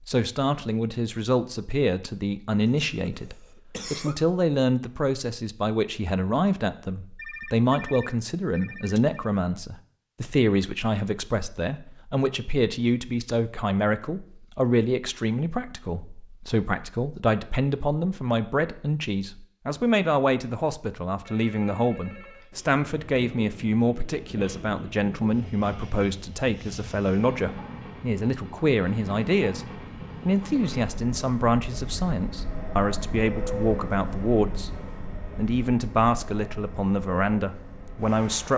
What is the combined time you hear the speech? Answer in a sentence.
The speech can be heard for 38 seconds in total.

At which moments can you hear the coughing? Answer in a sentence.
The coughing can be heard from 2.8 to 4.2 s.